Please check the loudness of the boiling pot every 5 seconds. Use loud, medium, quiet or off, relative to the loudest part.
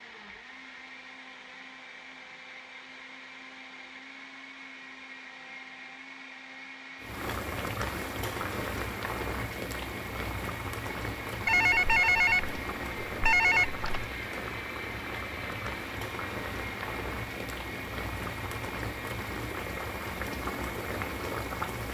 off, loud, loud, loud, loud.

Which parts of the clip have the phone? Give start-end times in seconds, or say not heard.
11.4-14.1.